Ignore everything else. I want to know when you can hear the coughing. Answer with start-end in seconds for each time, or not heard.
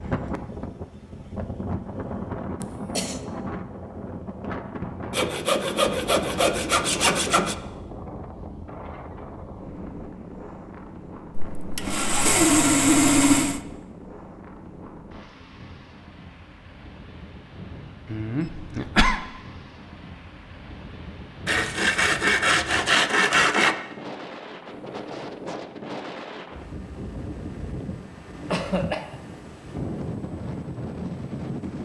2.6-3.2, 18.1-19.2, 28.5-29.2.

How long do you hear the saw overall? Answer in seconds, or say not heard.
7 s.